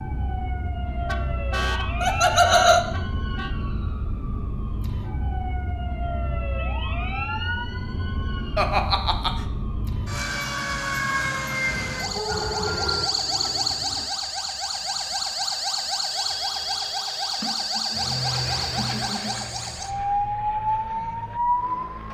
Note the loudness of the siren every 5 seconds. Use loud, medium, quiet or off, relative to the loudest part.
medium, medium, loud, loud, loud.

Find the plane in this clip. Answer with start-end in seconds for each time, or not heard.
12.2-14.1, 17.9-22.0.